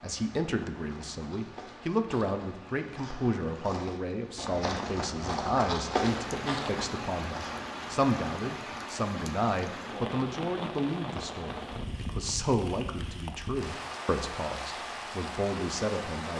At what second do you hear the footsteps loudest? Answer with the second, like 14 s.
6 s.